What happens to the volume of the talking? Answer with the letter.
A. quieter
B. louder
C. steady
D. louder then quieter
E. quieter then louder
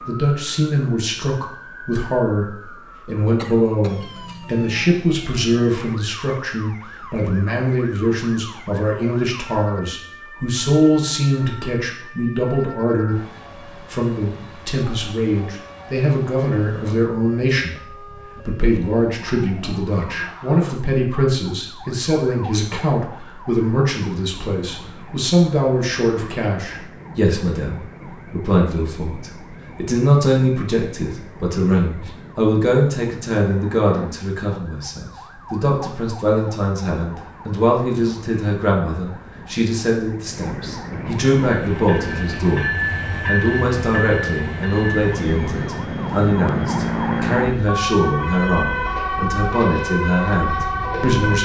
C.